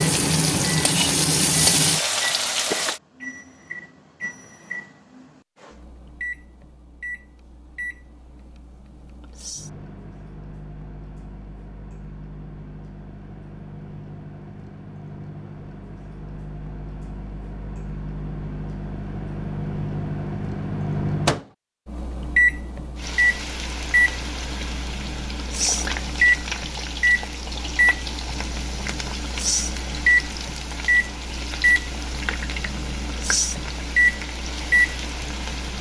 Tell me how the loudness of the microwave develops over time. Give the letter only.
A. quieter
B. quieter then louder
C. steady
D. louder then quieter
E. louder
E.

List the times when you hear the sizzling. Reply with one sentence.
You can hear the sizzling from 0.0 to 3.0 s and from 22.9 to 35.7 s.